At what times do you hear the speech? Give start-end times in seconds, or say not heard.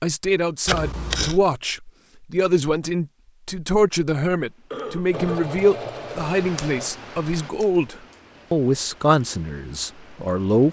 0.0-10.6.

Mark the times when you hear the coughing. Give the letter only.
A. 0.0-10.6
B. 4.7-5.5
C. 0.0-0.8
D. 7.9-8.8
B.